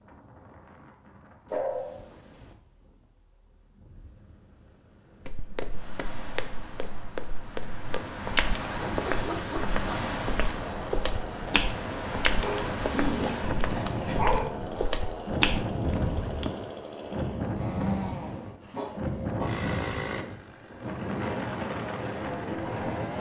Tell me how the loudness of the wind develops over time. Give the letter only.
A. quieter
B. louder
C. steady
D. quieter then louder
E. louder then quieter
B.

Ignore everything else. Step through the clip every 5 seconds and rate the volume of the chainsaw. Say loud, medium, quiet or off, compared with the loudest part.
off, off, loud, loud, loud.